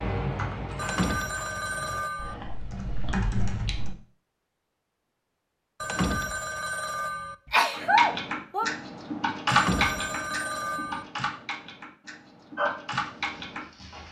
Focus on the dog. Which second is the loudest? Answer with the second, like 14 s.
13 s.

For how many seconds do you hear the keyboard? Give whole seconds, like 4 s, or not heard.
10 s.